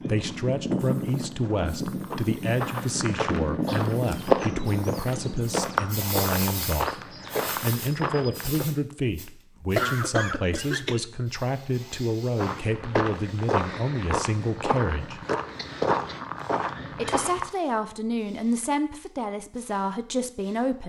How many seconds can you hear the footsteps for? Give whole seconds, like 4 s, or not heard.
14 s.